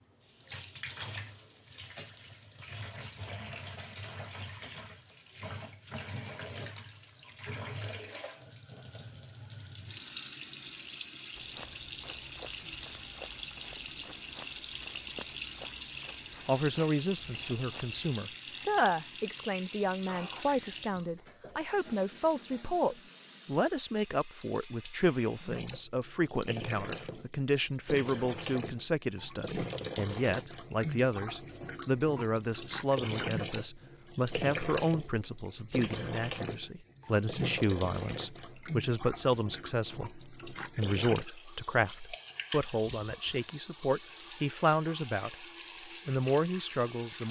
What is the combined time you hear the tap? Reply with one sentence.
You can hear the tap for 47 seconds altogether.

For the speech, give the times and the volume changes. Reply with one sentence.
The speech can be heard from 16.4 to 45.5 s, at a steady volume; and briefly from 46.0 to 47.2 s.